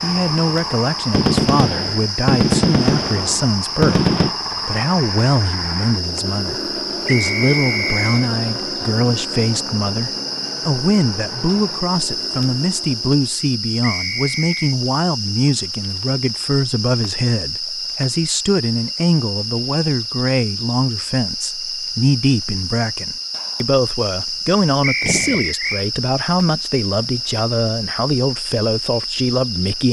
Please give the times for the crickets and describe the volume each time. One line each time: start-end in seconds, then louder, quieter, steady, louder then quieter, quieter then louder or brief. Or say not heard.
0.0-29.8 steady.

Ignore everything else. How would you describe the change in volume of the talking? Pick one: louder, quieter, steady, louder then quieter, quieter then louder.
steady.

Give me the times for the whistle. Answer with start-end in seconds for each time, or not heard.
7.0-8.3, 13.8-14.8, 24.8-25.9.